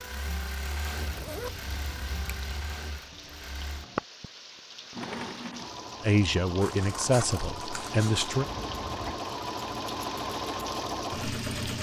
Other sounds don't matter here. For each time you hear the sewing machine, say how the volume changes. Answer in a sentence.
The sewing machine can be heard from 0.0 to 11.7 s, getting louder.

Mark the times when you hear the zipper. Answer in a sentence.
The zipper can be heard from 0.9 to 1.6 s and from 8.4 to 9.2 s.